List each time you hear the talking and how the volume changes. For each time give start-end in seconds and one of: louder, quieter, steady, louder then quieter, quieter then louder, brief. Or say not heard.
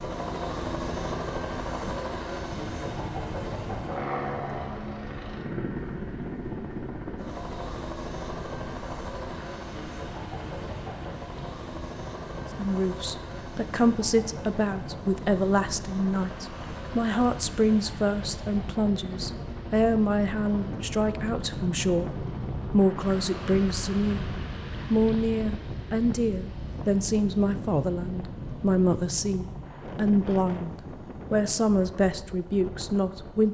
12.6-24.2 steady
24.9-33.4 steady.